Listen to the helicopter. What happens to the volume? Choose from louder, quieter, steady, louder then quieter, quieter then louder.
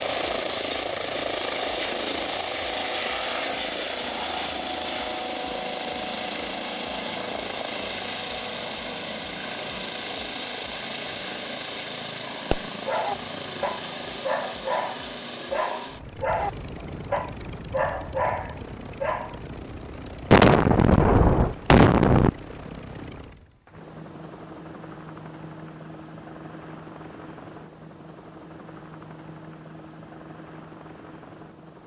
quieter.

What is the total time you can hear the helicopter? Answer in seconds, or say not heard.
32 s.